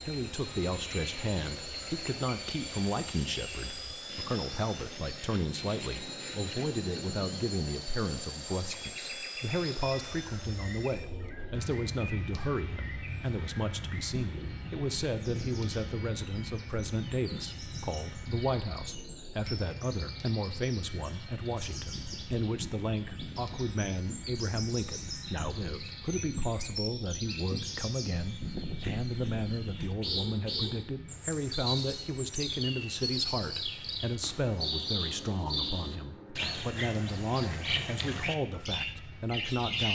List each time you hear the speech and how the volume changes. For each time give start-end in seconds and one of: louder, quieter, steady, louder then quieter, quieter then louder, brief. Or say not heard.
0.0-39.9 steady.